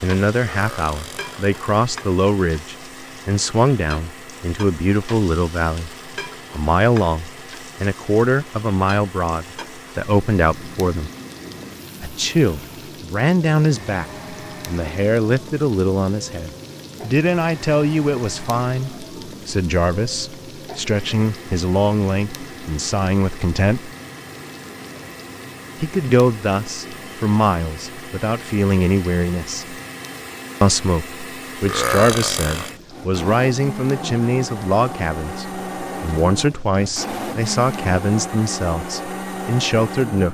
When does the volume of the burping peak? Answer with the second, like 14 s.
32 s.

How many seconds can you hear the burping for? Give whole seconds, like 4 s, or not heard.
2 s.